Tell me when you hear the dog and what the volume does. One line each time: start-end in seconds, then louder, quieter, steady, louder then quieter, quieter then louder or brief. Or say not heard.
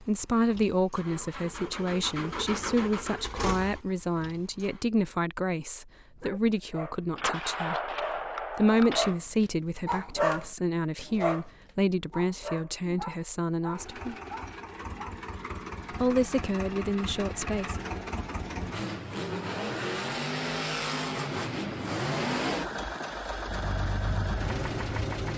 6.1-15.2 louder then quieter.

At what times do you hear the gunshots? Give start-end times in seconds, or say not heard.
7.2-9.2.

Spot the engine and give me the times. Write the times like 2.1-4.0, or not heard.
0.0-4.8, 13.7-25.3.